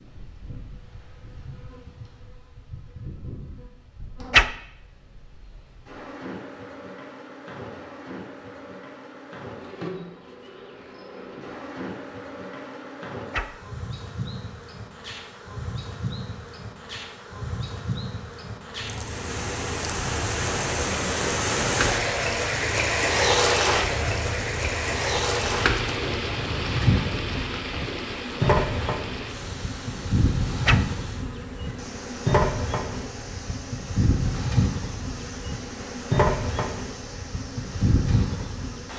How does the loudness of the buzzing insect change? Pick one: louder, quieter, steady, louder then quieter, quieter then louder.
louder.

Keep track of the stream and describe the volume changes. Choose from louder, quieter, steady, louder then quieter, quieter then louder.
quieter.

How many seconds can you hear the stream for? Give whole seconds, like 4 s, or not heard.
20 s.